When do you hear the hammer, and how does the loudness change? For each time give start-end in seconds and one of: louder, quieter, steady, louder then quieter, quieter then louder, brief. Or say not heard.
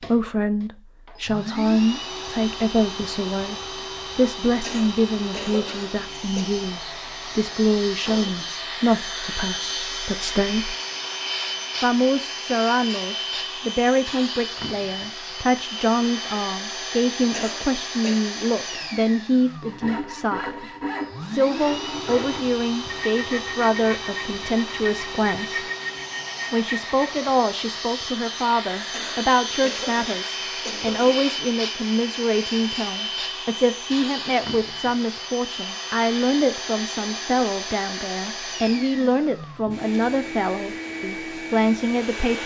not heard.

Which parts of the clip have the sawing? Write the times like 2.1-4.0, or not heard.
19.6-27.2.